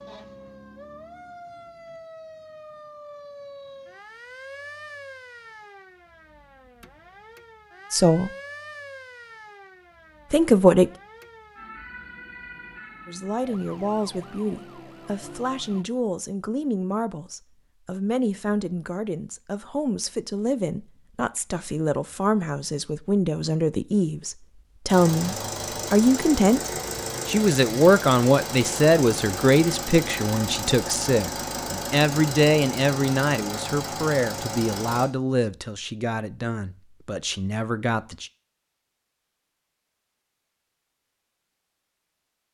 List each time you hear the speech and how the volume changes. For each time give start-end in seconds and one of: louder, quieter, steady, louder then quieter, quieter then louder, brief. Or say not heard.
7.9-8.3 brief
10.3-10.9 brief
13.1-38.3 louder then quieter.